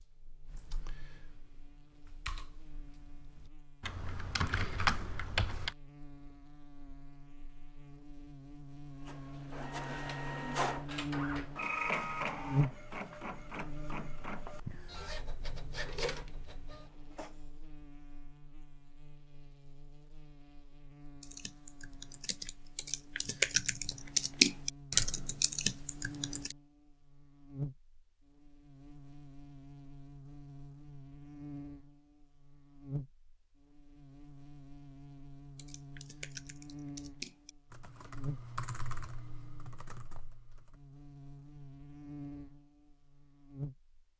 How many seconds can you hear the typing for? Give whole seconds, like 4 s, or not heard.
16 s.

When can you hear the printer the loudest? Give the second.
12 s.